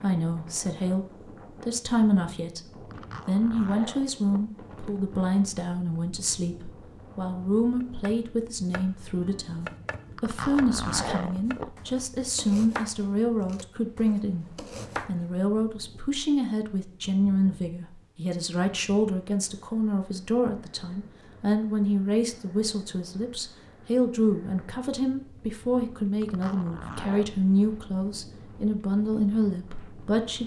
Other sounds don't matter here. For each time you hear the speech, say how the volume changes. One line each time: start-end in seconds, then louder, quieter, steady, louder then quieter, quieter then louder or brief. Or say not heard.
0.0-30.4 steady.